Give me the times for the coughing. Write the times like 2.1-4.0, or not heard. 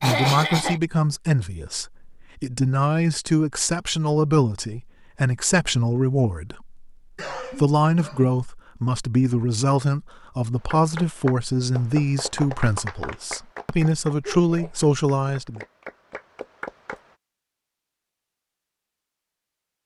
0.0-0.8, 7.2-8.3, 14.2-14.7.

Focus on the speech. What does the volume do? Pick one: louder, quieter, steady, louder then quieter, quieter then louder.
steady.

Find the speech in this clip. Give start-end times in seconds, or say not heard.
0.0-15.6.